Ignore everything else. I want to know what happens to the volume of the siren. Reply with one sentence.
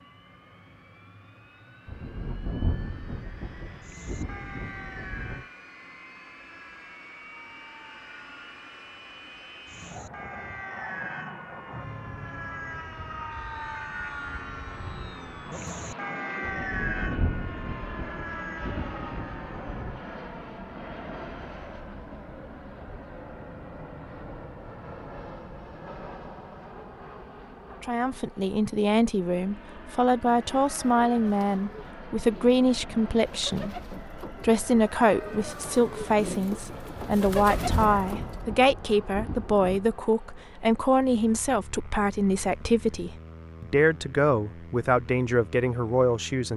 The loudness of the siren goes down, then up.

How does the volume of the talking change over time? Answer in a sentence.
The volume of the talking stays about the same.